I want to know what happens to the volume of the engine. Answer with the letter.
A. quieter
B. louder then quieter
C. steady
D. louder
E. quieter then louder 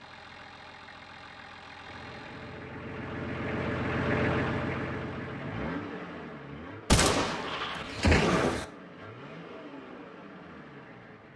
B.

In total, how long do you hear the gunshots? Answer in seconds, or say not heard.
2 s.